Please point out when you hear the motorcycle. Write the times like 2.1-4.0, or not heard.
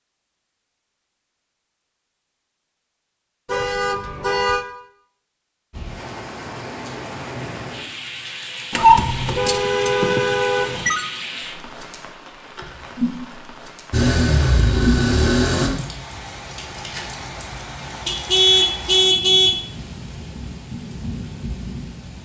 13.9-15.7.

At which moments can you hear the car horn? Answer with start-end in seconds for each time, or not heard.
3.5-4.7, 8.7-11.1, 18.1-19.6.